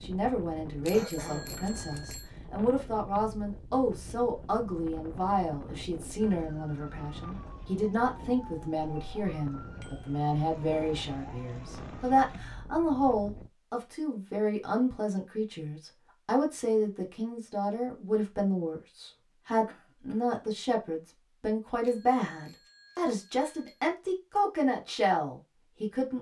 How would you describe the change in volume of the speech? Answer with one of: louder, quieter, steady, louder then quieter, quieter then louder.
steady.